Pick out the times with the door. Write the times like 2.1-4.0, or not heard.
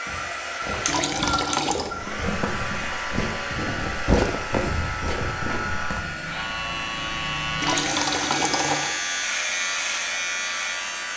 not heard.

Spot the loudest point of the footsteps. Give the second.
4 s.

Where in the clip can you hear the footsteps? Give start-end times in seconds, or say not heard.
0.1-6.0.